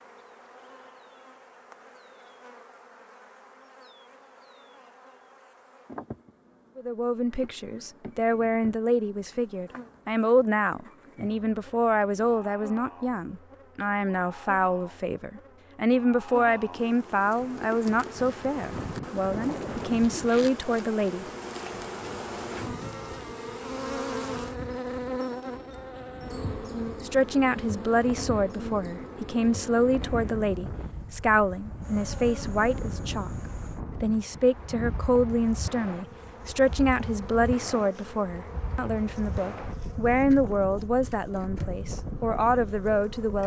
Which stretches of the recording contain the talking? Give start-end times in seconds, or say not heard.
6.8-21.2, 27.0-33.3, 34.0-43.4.